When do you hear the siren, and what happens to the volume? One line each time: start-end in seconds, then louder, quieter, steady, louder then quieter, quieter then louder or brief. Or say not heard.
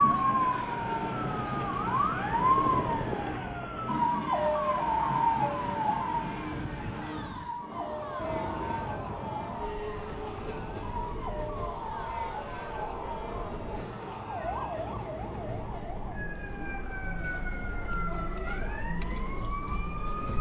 0.0-20.3 quieter.